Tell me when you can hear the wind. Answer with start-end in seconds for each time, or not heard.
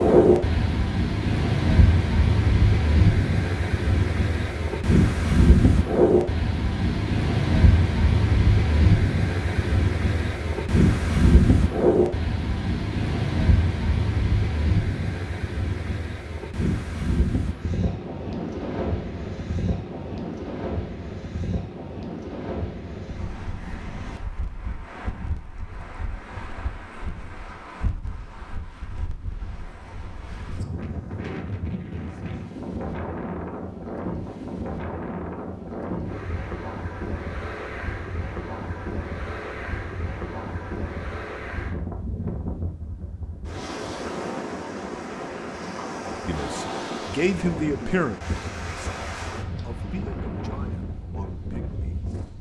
0.0-52.3.